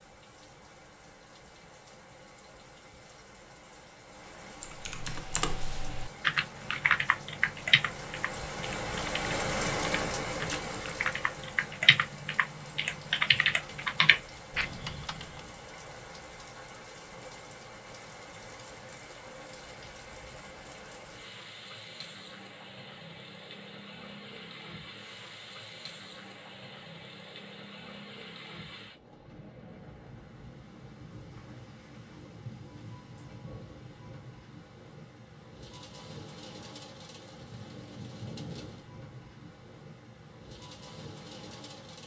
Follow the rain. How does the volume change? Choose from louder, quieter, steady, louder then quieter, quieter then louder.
louder then quieter.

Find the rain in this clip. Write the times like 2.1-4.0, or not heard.
0.0-42.0.